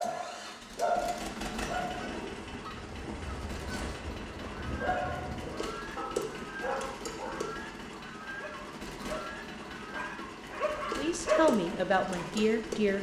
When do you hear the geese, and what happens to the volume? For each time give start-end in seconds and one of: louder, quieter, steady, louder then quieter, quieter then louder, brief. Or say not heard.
1.9-11.1 steady.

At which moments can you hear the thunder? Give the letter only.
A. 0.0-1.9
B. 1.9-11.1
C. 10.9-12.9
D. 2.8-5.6
D.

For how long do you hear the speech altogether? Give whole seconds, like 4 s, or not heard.
2 s.